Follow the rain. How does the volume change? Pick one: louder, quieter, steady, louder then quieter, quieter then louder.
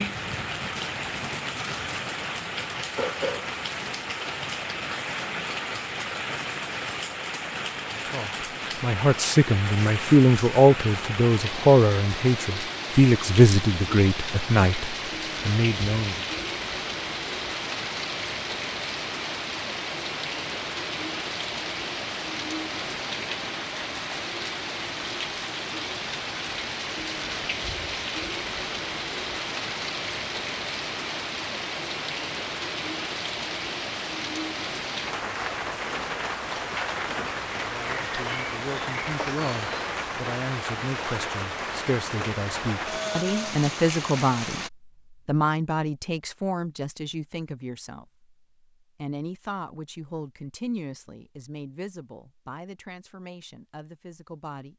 steady.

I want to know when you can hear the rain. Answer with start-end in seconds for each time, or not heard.
0.0-44.7.